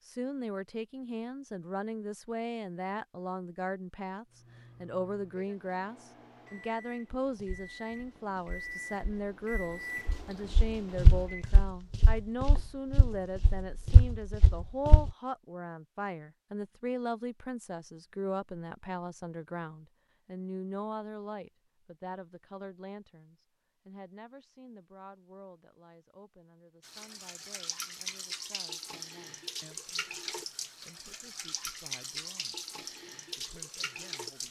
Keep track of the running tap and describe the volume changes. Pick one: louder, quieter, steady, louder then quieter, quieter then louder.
steady.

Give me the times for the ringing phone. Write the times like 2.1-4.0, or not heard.
not heard.